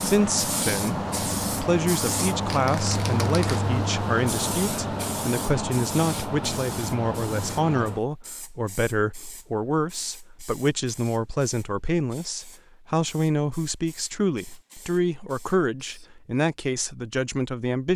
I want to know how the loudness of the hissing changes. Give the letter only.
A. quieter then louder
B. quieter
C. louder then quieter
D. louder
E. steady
B.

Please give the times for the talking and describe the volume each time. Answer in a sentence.
You can hear the talking from 0.0 to 17.9 s, at a steady volume.